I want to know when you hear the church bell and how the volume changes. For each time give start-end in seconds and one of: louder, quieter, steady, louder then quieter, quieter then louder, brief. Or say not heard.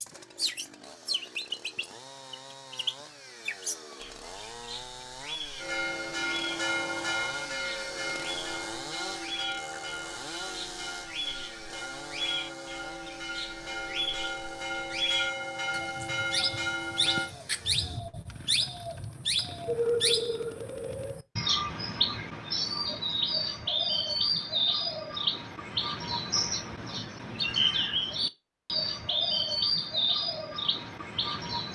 5.5-17.3 quieter then louder.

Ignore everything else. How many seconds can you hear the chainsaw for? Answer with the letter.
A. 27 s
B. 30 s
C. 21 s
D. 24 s
C.